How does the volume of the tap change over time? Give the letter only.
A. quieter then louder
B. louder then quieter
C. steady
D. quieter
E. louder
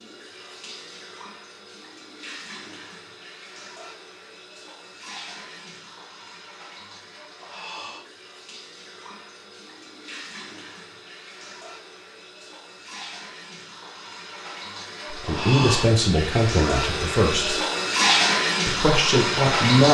E.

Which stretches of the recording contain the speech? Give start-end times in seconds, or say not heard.
15.1-17.6, 18.6-19.8.